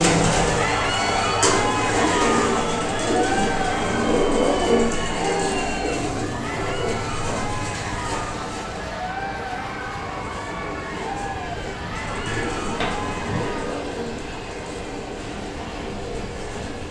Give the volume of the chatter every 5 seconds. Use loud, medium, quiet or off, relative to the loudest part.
loud, medium, medium, off.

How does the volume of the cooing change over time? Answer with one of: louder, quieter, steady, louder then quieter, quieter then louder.
quieter.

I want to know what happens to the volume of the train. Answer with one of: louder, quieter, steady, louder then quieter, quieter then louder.
steady.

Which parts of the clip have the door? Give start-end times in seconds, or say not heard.
12.2-13.5.